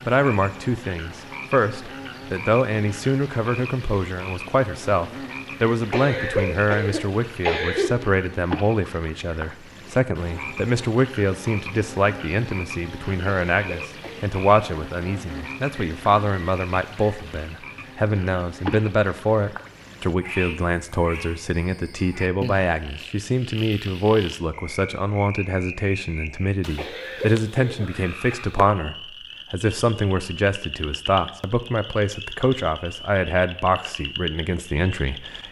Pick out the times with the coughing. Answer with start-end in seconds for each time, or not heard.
5.9-7.9, 13.2-14.2, 26.8-28.4.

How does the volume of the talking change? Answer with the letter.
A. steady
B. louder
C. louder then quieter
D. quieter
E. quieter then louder
A.